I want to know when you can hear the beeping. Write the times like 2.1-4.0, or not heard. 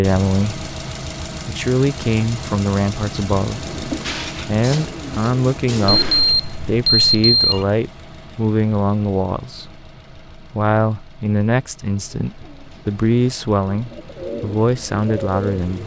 5.8-7.7.